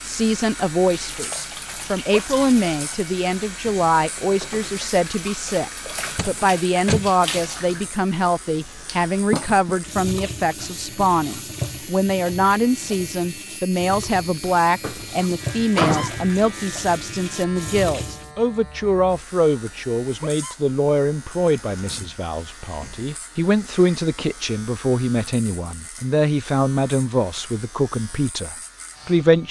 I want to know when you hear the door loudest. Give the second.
16 s.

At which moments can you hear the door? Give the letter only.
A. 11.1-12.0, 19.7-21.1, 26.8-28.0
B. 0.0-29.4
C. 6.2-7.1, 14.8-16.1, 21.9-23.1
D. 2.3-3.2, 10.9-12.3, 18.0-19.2
C.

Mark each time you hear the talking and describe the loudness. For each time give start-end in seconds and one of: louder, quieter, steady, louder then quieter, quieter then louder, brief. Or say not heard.
0.0-29.4 steady.